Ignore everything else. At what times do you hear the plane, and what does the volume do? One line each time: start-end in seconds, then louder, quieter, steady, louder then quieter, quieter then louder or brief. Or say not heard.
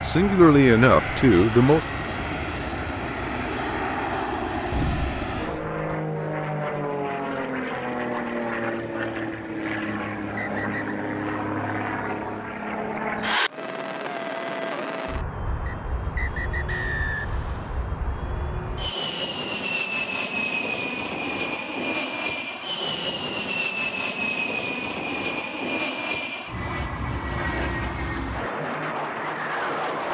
0.0-30.0 steady.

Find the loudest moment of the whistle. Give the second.
17 s.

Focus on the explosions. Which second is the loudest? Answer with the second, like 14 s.
5 s.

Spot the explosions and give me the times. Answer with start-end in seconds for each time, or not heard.
4.7-5.8, 16.6-17.9.